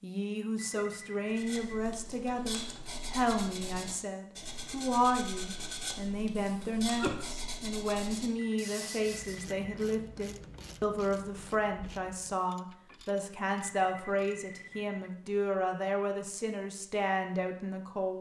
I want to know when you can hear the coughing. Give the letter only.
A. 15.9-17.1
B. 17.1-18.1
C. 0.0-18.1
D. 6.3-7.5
D.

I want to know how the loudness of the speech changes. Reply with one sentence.
The volume of the speech stays about the same.